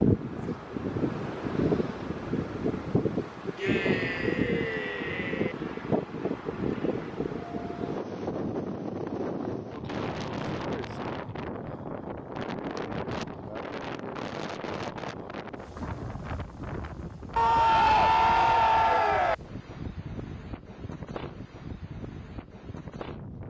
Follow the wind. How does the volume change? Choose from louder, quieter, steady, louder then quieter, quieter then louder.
quieter.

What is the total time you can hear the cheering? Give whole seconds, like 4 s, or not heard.
4 s.